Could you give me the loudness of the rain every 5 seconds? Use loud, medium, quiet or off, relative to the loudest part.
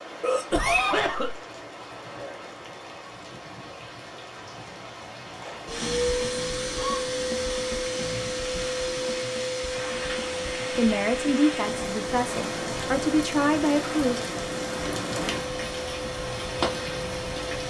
medium, medium, loud, loud.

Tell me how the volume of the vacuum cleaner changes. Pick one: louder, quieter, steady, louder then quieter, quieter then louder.
quieter.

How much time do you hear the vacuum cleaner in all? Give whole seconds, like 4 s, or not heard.
12 s.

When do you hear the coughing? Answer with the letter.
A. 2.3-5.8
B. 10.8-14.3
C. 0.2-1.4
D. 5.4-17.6
C.